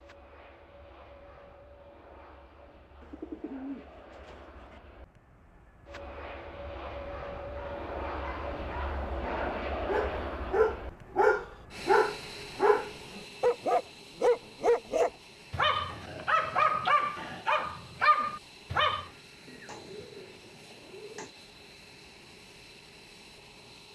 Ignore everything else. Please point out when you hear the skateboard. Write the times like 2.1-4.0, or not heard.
not heard.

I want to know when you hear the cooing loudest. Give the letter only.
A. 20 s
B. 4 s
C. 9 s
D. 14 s
B.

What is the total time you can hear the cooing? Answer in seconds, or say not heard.
4 s.